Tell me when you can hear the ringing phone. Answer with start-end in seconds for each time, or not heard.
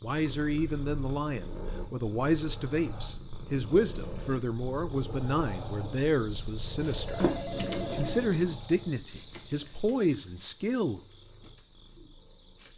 6.9-8.3.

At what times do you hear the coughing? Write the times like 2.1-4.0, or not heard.
not heard.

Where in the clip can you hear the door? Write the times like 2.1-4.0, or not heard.
7.2-8.6.